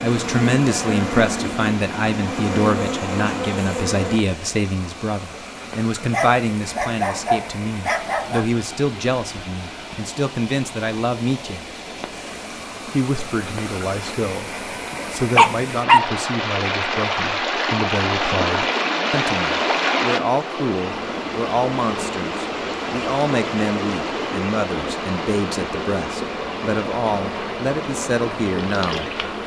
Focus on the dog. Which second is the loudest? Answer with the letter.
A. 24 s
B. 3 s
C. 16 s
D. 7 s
C.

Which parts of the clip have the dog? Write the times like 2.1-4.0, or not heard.
6.1-8.4, 14.9-16.0.